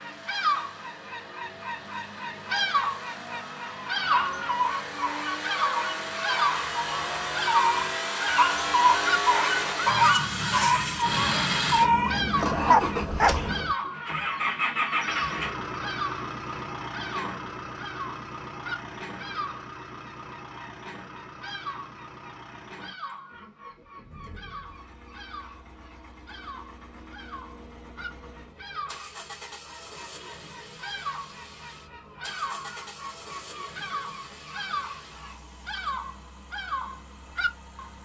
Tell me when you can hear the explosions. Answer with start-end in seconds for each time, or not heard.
not heard.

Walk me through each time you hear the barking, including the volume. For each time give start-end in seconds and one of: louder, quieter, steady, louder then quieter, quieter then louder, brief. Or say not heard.
4.0-13.8 louder.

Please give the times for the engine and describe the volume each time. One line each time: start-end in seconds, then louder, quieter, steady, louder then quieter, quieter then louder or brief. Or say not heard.
0.0-37.9 louder then quieter.